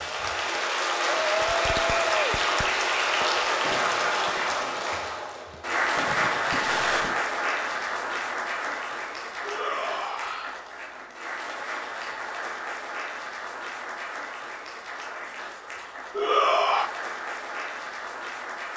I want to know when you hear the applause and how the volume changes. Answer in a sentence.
The applause can be heard from 0.0 to 18.7 s, getting quieter.